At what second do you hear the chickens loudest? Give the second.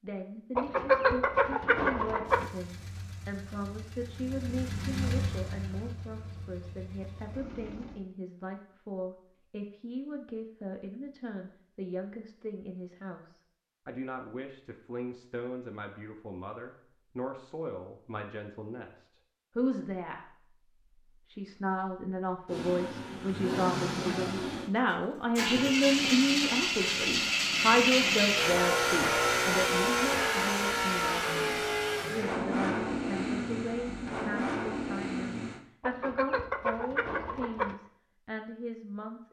1 s.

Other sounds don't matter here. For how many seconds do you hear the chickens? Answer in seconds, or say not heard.
4 s.